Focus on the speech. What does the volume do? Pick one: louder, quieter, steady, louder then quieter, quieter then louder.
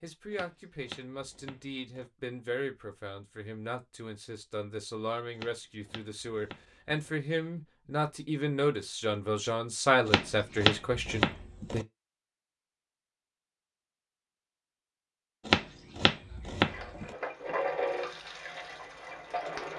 louder.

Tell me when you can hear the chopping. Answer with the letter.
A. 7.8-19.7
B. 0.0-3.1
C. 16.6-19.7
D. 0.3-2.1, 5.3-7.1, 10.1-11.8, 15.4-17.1
D.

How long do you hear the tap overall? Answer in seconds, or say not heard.
3 s.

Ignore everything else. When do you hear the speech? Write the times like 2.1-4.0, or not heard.
0.0-11.8.